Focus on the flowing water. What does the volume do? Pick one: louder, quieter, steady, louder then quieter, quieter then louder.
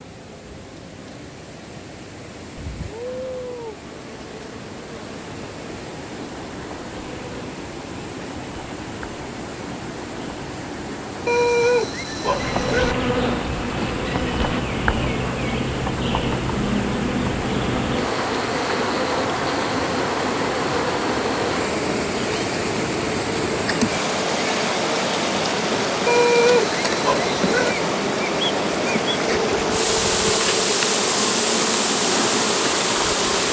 louder.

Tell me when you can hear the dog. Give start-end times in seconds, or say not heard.
11.2-12.9, 26.1-27.8.